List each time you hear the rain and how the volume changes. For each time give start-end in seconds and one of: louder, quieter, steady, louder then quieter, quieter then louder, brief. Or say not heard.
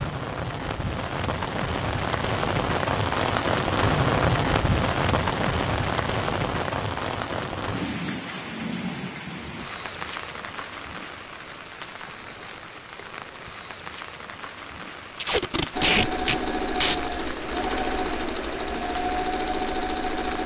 0.0-20.4 quieter.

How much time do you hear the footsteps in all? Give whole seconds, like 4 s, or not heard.
not heard.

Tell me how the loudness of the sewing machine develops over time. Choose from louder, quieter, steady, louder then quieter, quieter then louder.
steady.